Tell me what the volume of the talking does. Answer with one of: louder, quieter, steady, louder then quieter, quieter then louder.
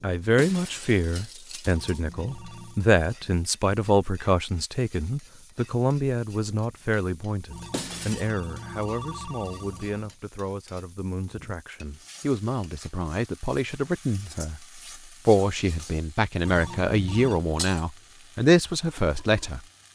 quieter then louder.